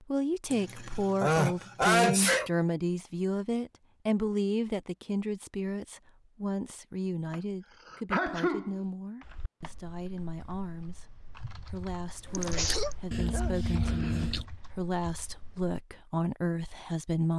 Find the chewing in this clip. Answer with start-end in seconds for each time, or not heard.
12.2-14.4.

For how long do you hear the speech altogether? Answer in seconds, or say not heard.
17 s.